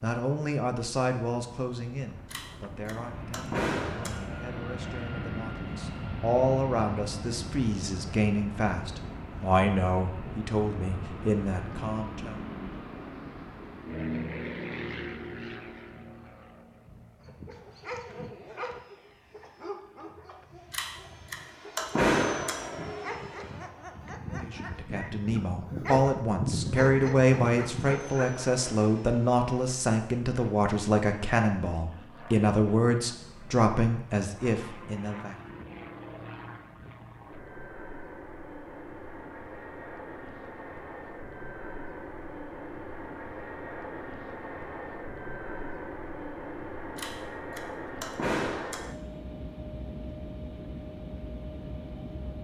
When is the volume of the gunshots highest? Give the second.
22 s.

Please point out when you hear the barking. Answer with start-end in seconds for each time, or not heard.
17.1-28.4.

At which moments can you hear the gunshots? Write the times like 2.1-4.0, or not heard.
2.3-4.2, 20.7-22.6, 47.0-48.9.